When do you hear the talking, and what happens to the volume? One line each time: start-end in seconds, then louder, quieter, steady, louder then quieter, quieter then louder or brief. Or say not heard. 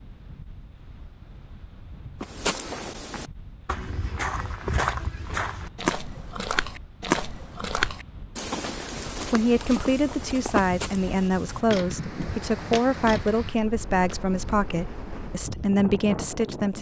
9.2-16.7 steady.